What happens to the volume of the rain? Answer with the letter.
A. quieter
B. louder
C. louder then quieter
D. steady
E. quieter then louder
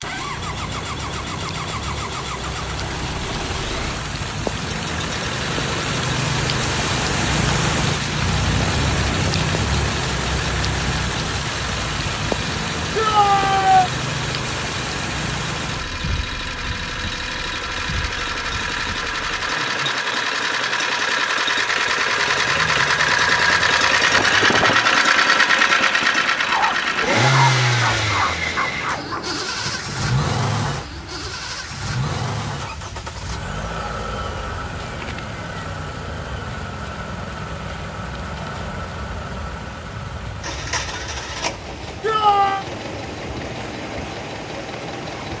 A.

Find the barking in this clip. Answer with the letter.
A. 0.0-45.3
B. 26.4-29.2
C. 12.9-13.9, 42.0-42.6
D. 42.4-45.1
B.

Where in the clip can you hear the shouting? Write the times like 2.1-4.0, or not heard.
12.9-13.9, 42.0-42.6.